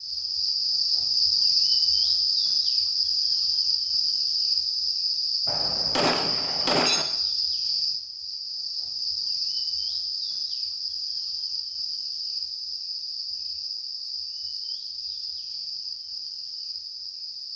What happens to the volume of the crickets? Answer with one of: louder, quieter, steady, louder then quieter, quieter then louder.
quieter.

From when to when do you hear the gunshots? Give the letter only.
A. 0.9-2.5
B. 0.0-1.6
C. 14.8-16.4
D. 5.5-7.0
D.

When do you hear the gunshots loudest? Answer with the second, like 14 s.
7 s.